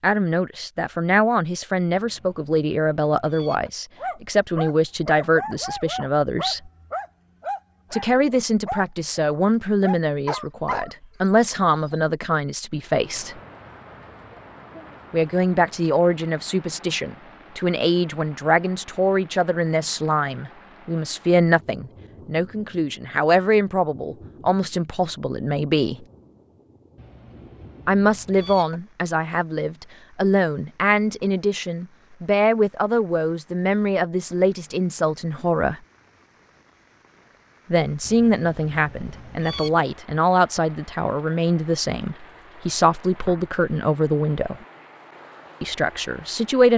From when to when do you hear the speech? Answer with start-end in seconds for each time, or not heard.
0.0-6.7, 7.9-13.3, 15.1-26.1, 27.9-35.8, 37.7-44.6, 45.6-46.7.